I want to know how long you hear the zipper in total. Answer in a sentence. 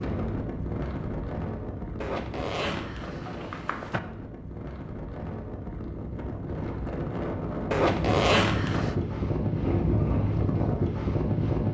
You can hear the zipper for 3 seconds altogether.